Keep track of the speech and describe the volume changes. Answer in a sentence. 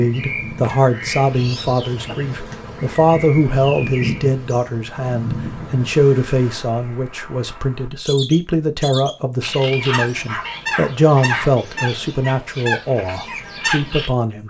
The loudness of the speech stays about the same.